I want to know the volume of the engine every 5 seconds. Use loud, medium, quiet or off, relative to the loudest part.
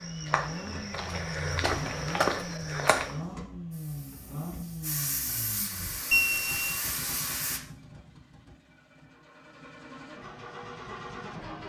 loud, medium, loud.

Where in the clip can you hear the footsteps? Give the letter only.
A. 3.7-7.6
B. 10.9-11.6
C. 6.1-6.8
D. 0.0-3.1
D.